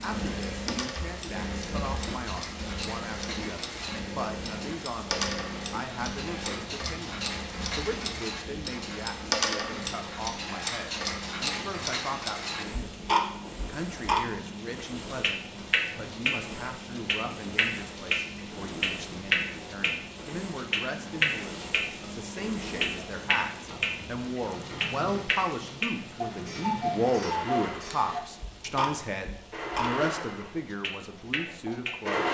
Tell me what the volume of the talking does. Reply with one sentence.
The loudness of the talking goes up.